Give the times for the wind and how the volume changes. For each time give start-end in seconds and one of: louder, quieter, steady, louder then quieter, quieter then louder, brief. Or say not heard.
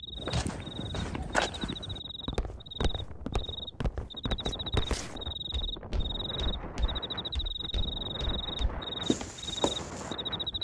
0.0-10.5 louder.